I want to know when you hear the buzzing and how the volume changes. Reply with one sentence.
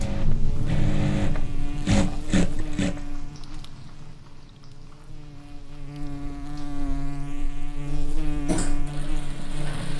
The buzzing can be heard from 0.1 to 9.9 s, getting quieter then louder.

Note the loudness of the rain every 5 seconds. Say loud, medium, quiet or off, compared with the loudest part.
loud, quiet.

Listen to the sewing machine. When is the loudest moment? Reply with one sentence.
The loudest moment of the sewing machine is at 2 seconds.